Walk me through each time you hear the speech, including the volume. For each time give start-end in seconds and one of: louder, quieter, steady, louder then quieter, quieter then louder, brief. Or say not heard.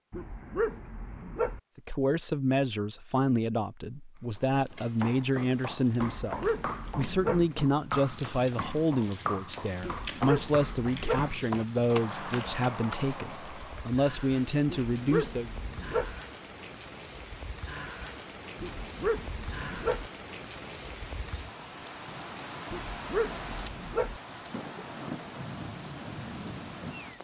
1.8-15.5 steady.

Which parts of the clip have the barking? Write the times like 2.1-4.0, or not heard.
0.1-1.6, 6.0-7.5, 9.8-11.3, 14.8-16.1, 18.6-20.1, 22.7-24.2.